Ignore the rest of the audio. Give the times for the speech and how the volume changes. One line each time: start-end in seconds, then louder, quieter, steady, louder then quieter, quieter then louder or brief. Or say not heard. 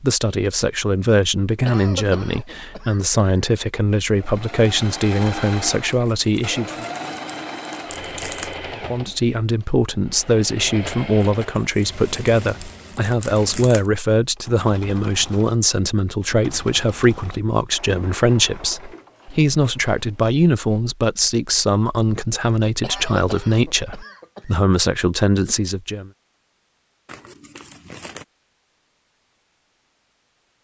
0.0-6.8 steady
8.9-26.1 steady.